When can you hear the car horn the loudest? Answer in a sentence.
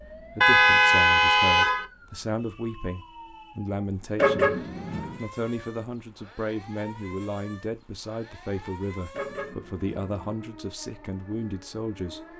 The volume of the car horn peaks at 1 second.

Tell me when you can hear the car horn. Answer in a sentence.
The car horn can be heard from 0.4 to 1.9 s, from 4.2 to 5.2 s and from 9.1 to 10.3 s.